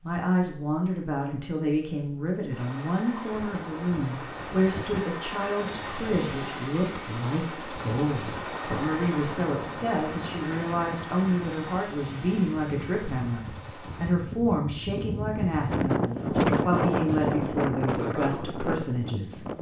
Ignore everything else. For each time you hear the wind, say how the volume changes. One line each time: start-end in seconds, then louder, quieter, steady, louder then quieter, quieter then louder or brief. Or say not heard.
3.3-19.5 louder.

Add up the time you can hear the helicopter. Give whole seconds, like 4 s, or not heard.
12 s.